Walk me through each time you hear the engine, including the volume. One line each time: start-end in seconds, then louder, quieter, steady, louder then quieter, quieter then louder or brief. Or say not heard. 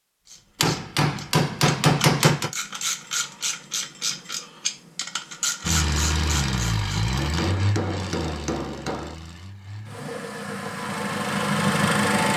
5.6-12.3 quieter then louder.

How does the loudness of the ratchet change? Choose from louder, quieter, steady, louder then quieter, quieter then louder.
louder.